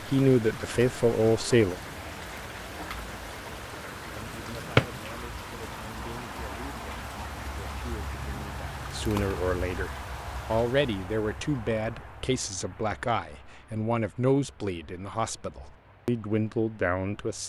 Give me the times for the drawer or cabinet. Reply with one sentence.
The drawer or cabinet can be heard from 4.2 to 5.0 s.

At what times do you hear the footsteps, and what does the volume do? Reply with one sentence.
The footsteps can't be heard in this clip.